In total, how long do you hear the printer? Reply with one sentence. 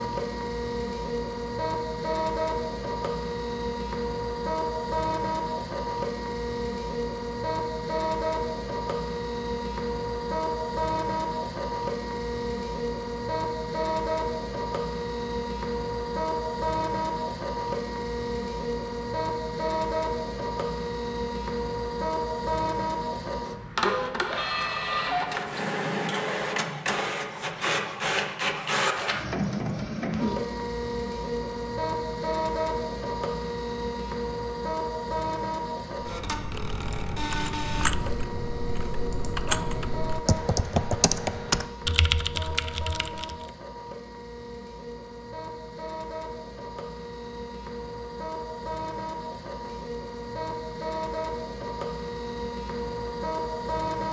The printer can be heard for 54 seconds in total.